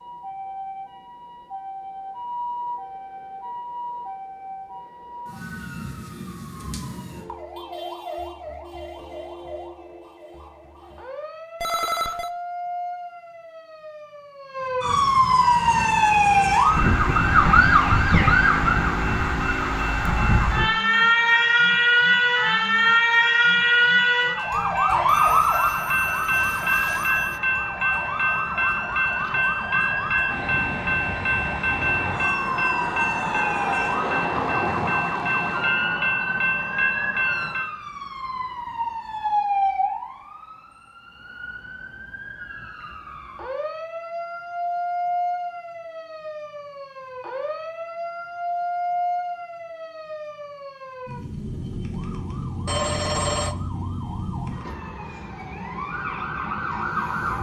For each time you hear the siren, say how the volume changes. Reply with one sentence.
The siren can be heard from 0.0 to 57.3 s, getting louder then quieter.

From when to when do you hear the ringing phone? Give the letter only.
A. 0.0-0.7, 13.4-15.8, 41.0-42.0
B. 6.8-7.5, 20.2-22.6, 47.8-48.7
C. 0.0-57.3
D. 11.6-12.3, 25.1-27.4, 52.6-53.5
D.